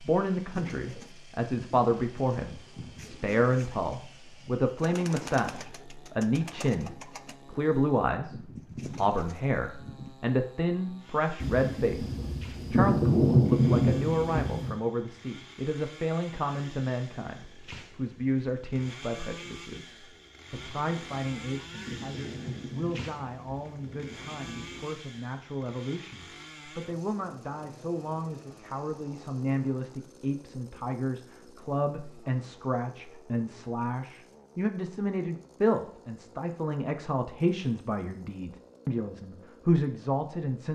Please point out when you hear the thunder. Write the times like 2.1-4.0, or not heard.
11.4-14.8, 20.5-25.0.